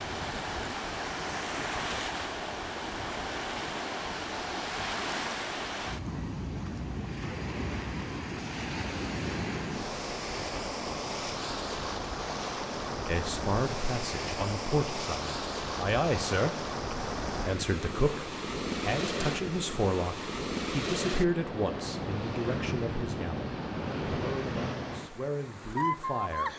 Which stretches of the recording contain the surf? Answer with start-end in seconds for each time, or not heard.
0.0-26.5.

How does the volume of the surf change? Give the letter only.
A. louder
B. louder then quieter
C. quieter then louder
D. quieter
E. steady
E.